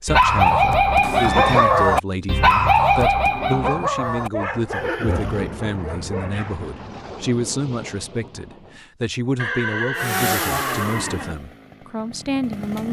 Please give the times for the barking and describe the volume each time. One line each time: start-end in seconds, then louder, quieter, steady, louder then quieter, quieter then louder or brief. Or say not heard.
0.1-6.7 quieter.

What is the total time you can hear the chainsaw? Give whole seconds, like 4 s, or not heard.
3 s.